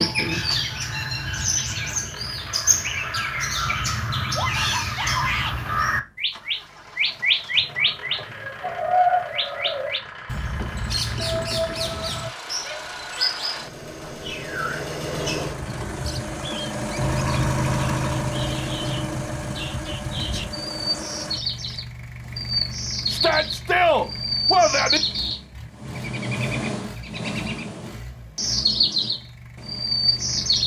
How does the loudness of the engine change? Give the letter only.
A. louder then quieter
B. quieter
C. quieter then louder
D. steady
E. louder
A.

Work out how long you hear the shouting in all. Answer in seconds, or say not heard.
4 s.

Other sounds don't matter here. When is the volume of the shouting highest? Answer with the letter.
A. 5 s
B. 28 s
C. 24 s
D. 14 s
C.